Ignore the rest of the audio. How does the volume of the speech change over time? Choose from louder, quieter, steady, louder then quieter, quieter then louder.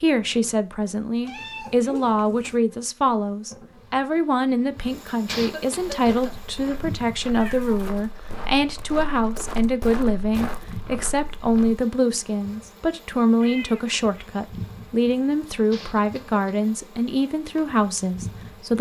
steady.